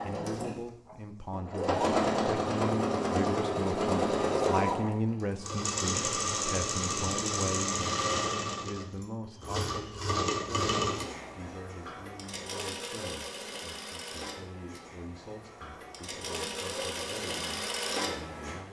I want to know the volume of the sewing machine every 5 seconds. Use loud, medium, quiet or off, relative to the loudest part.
loud, loud, medium, medium.